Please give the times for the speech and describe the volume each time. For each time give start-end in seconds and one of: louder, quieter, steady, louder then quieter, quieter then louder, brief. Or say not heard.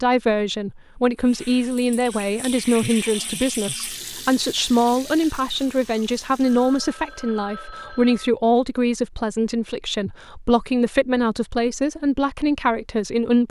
0.0-13.4 steady.